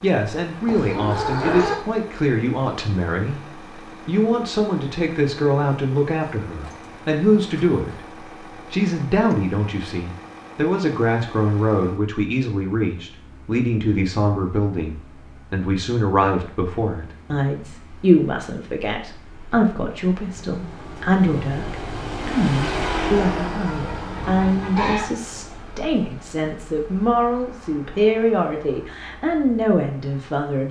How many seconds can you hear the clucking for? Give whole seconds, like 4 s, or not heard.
3 s.